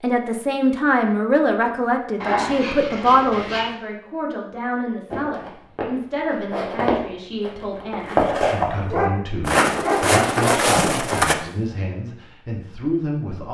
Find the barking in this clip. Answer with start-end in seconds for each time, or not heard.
2.2-3.7, 8.7-10.8.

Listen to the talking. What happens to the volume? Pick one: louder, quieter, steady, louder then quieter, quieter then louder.
quieter.